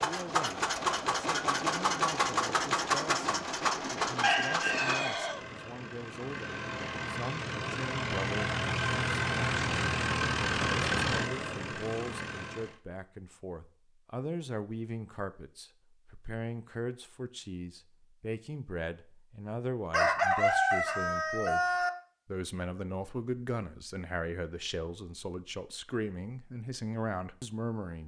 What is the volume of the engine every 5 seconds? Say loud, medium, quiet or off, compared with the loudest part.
loud, loud, loud, off, off, off.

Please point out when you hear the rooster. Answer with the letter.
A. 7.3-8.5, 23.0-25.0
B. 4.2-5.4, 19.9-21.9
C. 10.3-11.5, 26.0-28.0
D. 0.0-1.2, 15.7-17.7
B.